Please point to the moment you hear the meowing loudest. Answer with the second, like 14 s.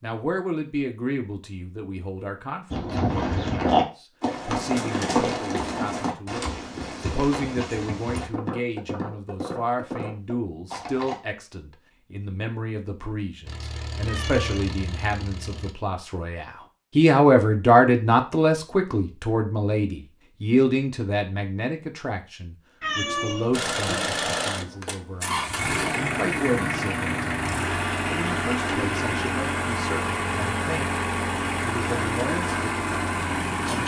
23 s.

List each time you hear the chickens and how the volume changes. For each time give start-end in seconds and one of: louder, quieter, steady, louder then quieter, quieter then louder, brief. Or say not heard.
not heard.